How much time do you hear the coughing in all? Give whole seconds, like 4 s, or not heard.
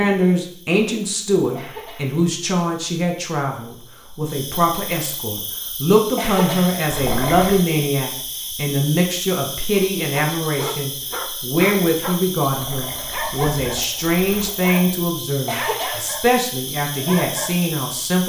2 s.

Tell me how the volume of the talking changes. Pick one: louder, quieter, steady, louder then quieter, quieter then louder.
steady.